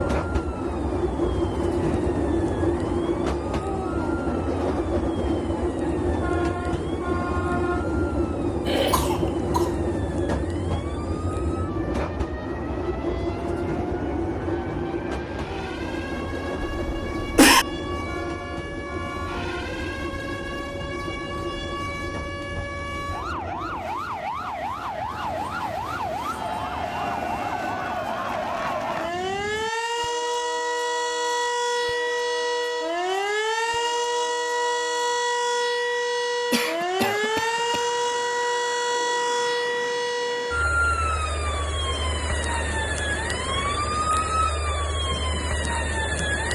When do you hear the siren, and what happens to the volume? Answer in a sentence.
The siren can be heard from 0.0 to 46.4 s, getting louder.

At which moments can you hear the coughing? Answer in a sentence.
You can hear the coughing from 8.7 to 9.7 s, from 16.8 to 17.6 s and from 36.5 to 37.8 s.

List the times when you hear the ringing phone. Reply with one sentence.
The ringing phone can't be heard in this clip.